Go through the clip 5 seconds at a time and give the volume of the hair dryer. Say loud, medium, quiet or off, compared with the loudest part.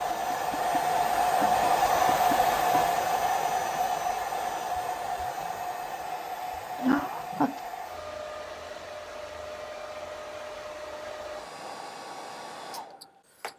loud, medium, quiet.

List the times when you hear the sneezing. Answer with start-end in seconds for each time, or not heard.
6.8-7.5.